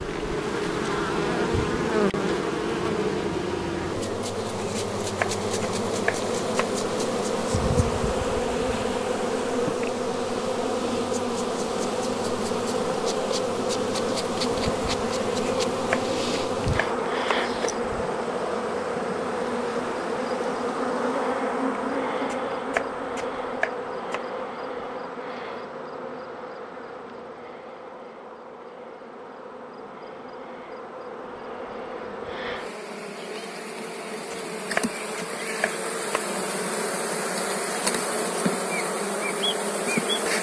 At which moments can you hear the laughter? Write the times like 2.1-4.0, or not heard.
not heard.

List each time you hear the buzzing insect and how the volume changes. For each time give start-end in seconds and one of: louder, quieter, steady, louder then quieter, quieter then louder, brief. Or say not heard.
0.0-40.3 quieter then louder.